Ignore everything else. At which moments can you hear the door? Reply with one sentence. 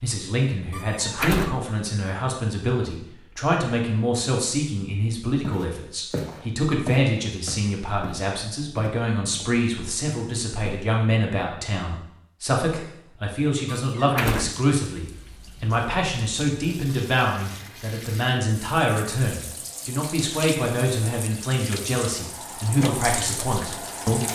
You can hear the door from 0.7 to 1.6 s and from 13.7 to 14.6 s.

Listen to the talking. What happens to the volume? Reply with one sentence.
The volume of the talking stays about the same.